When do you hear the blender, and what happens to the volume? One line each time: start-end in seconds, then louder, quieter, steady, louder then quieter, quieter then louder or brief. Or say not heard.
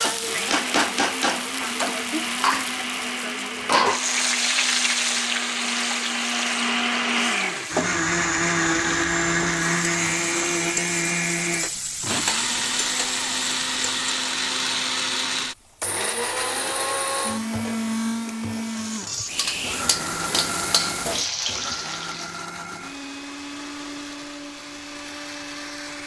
0.0-26.0 louder then quieter.